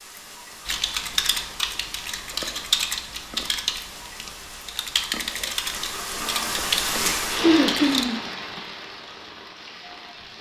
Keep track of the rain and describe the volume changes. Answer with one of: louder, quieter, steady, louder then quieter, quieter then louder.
louder then quieter.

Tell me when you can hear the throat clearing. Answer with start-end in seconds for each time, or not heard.
7.4-8.6.